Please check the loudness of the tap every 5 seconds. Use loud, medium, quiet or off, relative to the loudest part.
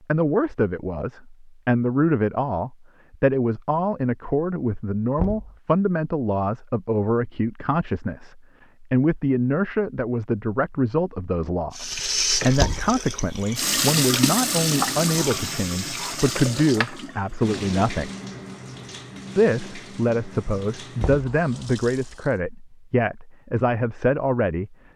off, off, loud, medium, quiet.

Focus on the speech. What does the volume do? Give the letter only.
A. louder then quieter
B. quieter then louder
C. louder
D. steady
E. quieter
D.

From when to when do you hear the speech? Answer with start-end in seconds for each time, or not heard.
0.1-18.1, 19.4-24.8.